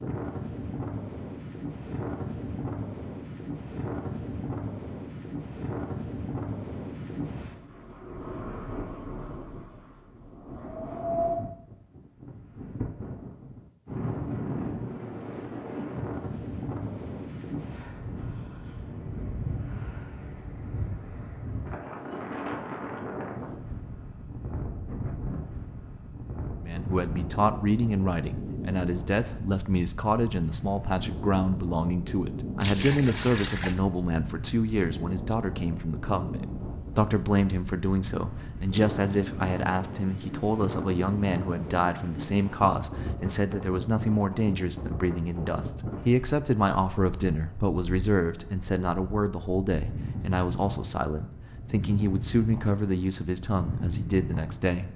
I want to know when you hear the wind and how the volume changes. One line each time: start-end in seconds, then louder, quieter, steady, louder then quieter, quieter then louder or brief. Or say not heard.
0.0-54.9 steady.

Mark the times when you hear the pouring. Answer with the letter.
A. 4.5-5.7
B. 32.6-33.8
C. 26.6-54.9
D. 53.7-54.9
B.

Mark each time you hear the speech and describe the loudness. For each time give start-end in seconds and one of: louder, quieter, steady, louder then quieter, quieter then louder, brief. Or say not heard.
26.6-54.9 steady.